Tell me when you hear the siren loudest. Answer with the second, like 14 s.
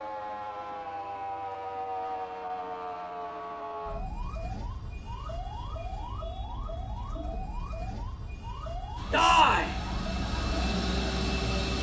2 s.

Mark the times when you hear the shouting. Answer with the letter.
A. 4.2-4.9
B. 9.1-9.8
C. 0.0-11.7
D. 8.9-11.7
B.